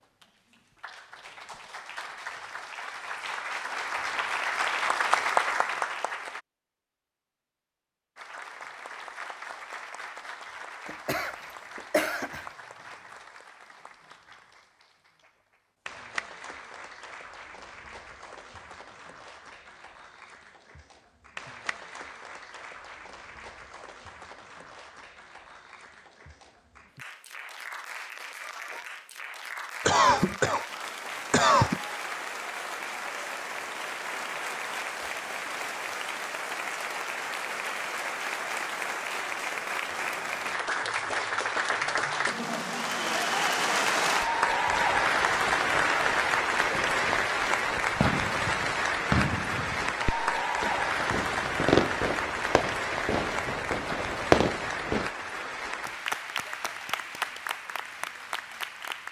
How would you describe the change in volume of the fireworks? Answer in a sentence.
The loudness of the fireworks goes up.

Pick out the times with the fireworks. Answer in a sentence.
The fireworks can be heard from 44.6 to 55.1 s.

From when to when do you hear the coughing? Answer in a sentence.
You can hear the coughing from 10.8 to 12.4 s and from 29.9 to 31.8 s.